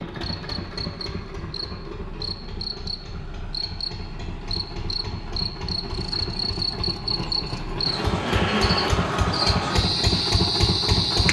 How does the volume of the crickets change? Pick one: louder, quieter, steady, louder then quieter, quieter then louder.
louder.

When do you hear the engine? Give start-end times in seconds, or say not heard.
0.0-11.2.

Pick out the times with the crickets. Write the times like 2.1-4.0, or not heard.
0.2-11.2.